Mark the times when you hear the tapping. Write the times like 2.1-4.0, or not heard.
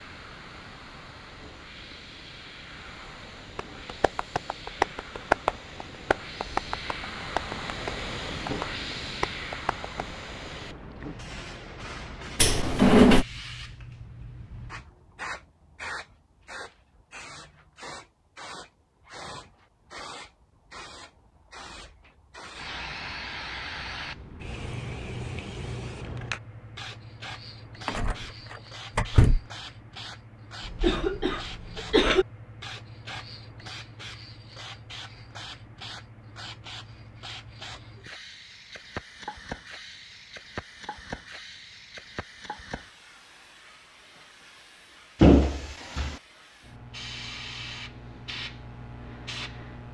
3.5-9.9.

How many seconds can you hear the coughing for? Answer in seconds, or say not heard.
2 s.